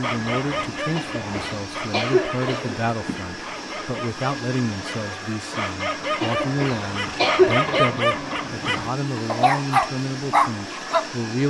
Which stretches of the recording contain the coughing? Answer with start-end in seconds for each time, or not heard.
0.9-2.9, 6.2-8.0.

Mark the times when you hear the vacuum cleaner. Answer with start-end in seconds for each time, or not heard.
0.0-11.4.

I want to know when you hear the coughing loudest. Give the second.
7 s.